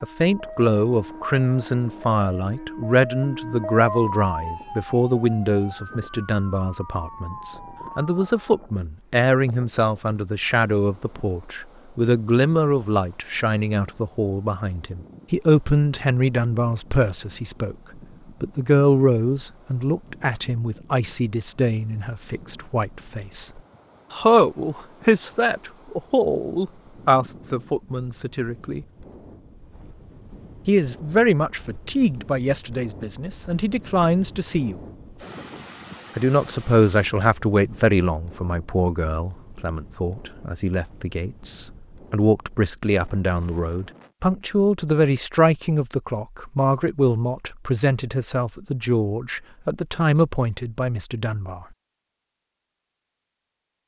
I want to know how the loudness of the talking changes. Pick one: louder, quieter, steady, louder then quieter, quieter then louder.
steady.